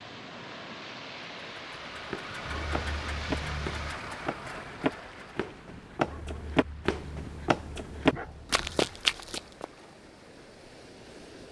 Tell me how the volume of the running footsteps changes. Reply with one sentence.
The volume of the running footsteps goes up.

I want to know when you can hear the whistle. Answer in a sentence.
The whistle can't be heard in this clip.